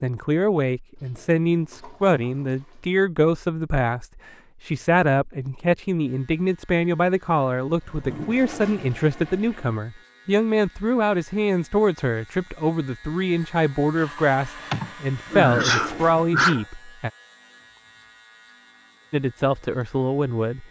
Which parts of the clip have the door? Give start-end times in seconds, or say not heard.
not heard.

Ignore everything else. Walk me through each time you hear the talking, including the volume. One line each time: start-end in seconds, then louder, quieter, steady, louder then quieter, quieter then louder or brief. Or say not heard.
0.0-17.1 steady
19.1-20.6 brief.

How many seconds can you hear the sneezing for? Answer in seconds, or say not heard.
2 s.